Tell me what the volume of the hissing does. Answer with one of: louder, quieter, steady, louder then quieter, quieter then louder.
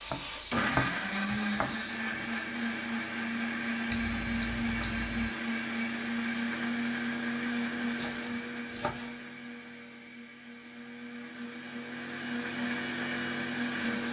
quieter.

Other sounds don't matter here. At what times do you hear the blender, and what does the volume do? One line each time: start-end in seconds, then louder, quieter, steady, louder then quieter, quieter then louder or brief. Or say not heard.
0.1-14.0 quieter then louder.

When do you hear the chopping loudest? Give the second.
1 s.